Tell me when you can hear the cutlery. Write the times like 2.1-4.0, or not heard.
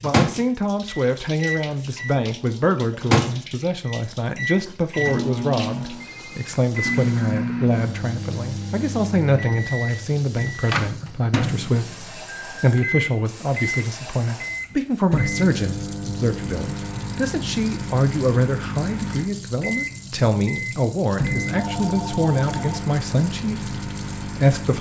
not heard.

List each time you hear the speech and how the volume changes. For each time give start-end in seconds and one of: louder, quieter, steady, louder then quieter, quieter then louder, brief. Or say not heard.
0.0-24.7 steady.